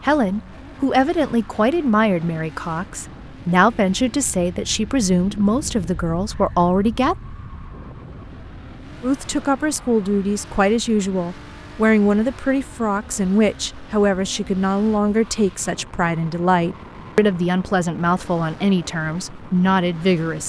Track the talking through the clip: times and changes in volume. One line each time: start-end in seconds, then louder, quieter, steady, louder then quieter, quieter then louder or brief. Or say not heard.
0.0-7.2 steady
9.0-20.4 steady.